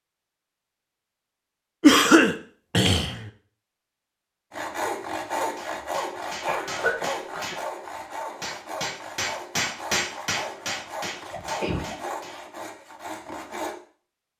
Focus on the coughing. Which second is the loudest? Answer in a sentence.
The loudest moment of the coughing is at 2 seconds.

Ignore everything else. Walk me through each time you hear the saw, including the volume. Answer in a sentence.
The saw can be heard from 4.5 to 13.8 s, getting quieter.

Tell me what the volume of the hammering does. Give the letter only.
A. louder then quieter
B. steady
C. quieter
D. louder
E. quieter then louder
A.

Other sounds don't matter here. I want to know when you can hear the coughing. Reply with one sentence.
The coughing can be heard from 1.8 to 3.2 s, from 6.5 to 7.6 s and from 10.6 to 12.1 s.